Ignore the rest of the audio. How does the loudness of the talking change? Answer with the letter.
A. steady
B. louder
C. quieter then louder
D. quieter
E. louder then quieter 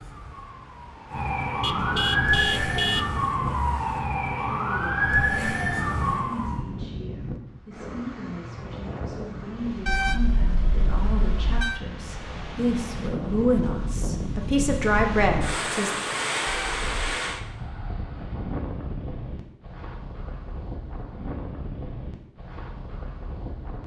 B.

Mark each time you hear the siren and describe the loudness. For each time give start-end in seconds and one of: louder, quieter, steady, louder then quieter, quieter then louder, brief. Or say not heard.
0.0-6.7 louder.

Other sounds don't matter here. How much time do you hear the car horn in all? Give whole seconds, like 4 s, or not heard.
4 s.